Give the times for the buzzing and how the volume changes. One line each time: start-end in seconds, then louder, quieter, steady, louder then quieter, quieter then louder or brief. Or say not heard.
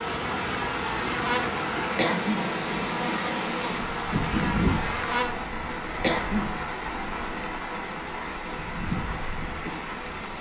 0.0-5.5 steady.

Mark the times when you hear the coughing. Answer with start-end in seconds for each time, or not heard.
1.9-2.5, 6.0-6.6.